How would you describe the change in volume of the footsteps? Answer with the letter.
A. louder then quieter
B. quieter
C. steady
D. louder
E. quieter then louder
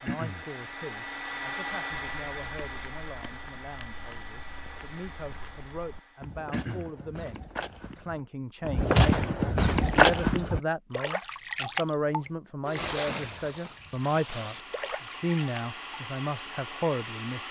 D.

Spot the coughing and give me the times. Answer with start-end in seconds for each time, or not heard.
0.1-0.5, 6.5-6.9, 13.1-13.5.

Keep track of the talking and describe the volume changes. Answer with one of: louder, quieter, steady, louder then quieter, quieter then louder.
louder.